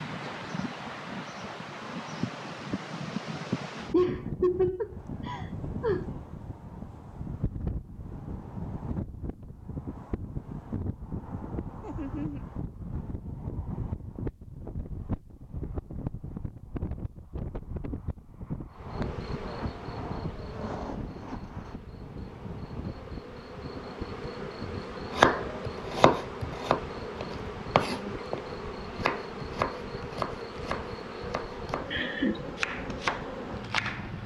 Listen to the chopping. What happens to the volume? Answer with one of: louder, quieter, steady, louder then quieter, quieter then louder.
quieter then louder.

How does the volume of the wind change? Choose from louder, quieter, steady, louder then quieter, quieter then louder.
quieter.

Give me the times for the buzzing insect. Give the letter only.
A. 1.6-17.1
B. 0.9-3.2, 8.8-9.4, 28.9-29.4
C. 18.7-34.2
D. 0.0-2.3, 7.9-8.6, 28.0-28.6
C.